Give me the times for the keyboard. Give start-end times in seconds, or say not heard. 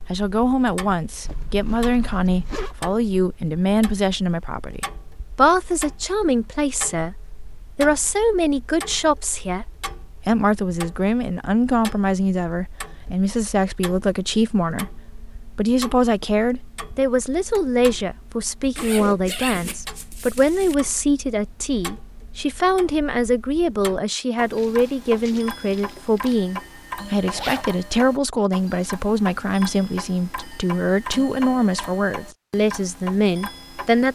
not heard.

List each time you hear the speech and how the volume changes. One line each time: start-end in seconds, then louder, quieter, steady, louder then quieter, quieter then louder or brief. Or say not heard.
0.1-34.0 steady.